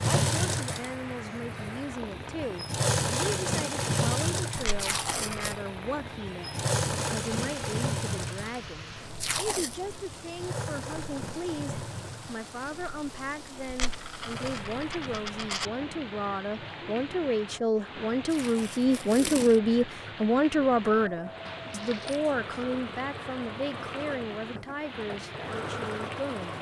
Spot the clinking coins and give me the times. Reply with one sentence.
You can hear the clinking coins from 4.5 to 5.6 s, from 13.7 to 15.7 s and from 21.6 to 22.6 s.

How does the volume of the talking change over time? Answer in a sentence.
The loudness of the talking goes up, then down.